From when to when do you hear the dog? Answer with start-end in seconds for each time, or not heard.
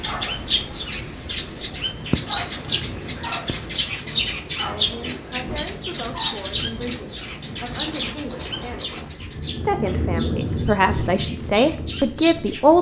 not heard.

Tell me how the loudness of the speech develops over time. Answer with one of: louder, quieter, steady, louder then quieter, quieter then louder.
louder.